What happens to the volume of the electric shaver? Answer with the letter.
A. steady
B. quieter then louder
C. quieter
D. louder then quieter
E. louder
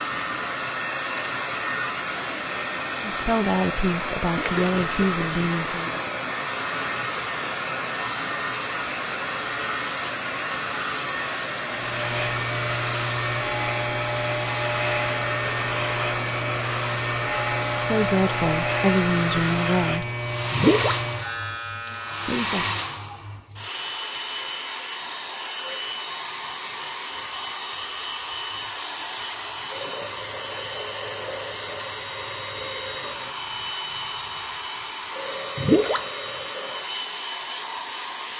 A.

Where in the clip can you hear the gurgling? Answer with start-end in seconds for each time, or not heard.
4.3-6.3, 20.5-21.1, 35.5-36.1.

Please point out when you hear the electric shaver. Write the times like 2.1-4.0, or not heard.
11.7-22.5.